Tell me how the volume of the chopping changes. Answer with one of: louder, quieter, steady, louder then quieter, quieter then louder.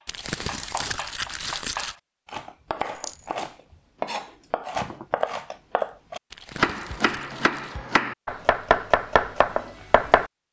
louder.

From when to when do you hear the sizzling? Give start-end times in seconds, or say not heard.
not heard.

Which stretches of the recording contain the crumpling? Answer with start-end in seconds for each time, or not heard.
0.1-1.9, 6.3-7.8.